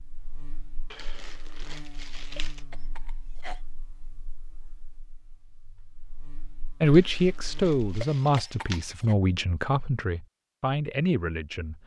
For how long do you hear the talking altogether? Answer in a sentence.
You can hear the talking for 5 seconds altogether.